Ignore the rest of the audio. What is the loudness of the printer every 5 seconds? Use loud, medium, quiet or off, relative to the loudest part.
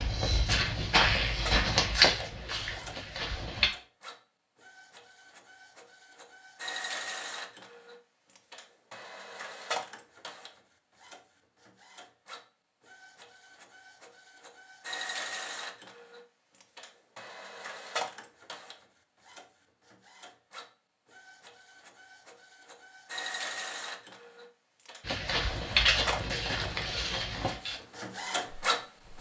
medium, medium, quiet, medium, medium, loud.